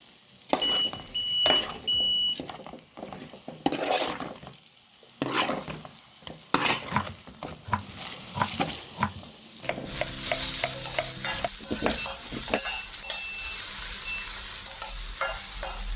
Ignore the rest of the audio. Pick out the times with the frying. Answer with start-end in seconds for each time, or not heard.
0.0-15.9.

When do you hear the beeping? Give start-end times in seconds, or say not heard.
0.6-2.4, 11.9-14.3.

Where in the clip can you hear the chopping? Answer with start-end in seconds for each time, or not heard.
6.8-12.6.